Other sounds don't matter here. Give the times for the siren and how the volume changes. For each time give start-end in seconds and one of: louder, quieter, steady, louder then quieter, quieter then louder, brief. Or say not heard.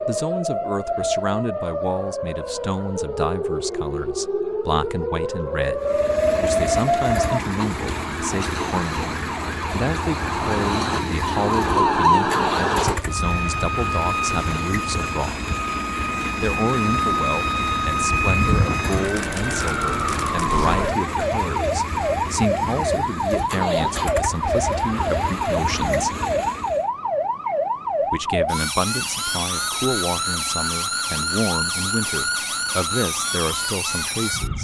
0.0-34.5 steady.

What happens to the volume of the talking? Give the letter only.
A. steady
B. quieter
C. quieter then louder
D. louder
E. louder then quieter
A.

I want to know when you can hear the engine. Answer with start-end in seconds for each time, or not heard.
5.8-26.9.